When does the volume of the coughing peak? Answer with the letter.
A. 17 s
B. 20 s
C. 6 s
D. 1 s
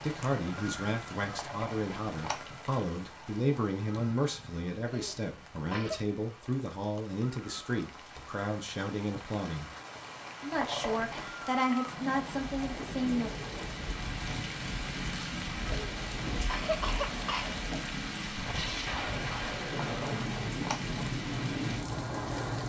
A.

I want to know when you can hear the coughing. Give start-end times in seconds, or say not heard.
4.8-6.0, 15.7-17.6.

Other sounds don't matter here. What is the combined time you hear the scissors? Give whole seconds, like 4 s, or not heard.
3 s.